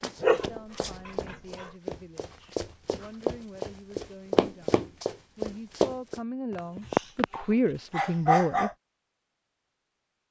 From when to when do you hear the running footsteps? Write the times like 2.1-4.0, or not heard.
0.0-6.2.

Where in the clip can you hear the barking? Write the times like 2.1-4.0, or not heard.
0.2-1.7, 6.5-7.2, 8.0-8.7.